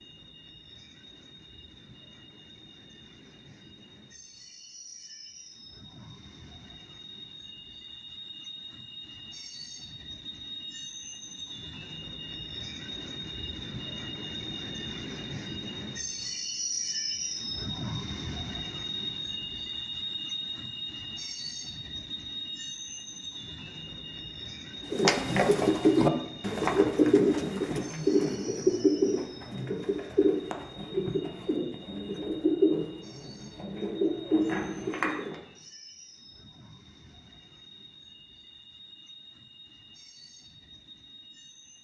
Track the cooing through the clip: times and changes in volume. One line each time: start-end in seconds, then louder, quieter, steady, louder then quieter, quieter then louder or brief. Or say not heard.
24.9-35.4 quieter.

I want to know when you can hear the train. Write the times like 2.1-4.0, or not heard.
0.0-41.7.